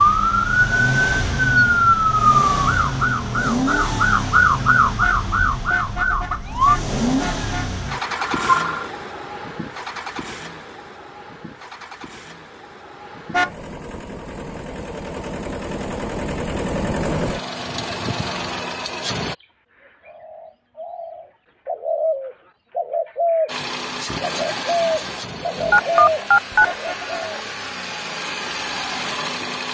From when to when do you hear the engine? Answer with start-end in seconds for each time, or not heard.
0.0-19.4, 23.4-29.6.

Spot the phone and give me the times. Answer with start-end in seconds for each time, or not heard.
8.2-8.9, 25.7-26.6.